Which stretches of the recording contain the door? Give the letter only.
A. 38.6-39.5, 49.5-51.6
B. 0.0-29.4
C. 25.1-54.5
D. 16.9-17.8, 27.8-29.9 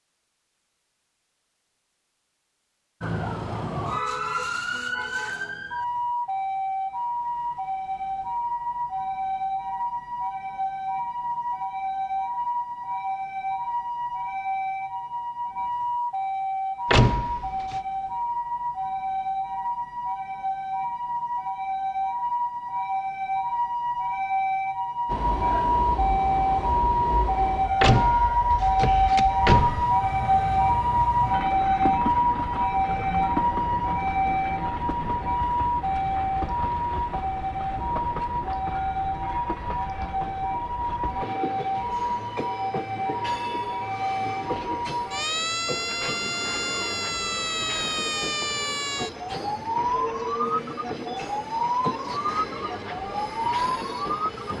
D.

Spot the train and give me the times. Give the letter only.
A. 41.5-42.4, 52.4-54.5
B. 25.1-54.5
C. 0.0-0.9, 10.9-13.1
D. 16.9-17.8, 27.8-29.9
B.